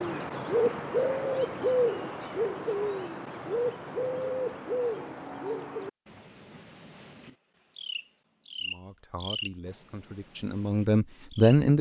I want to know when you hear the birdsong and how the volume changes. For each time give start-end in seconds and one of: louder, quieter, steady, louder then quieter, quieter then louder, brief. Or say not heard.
0.0-11.6 quieter.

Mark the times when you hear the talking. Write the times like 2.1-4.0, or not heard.
8.6-11.7.